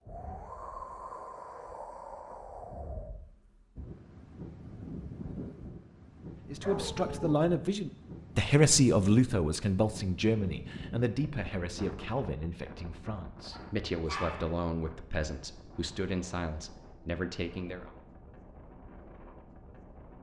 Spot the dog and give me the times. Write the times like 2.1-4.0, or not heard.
6.6-7.3, 13.5-14.6.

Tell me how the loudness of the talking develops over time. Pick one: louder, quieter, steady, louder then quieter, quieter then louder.
quieter.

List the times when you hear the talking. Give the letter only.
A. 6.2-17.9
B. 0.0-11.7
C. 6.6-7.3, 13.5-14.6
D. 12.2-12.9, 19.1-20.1
A.